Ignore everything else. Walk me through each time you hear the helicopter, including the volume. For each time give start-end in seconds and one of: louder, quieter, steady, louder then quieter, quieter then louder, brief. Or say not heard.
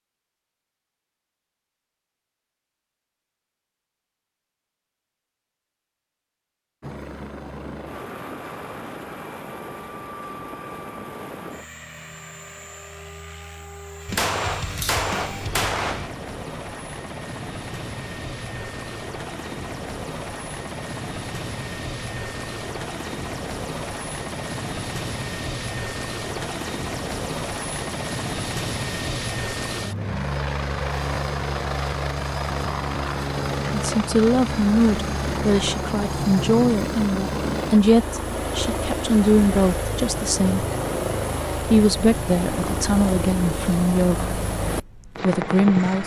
6.8-46.0 louder.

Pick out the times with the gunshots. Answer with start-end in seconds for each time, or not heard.
14.1-16.1.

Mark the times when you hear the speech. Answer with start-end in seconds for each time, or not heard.
33.7-40.6, 41.6-44.3, 45.2-46.0.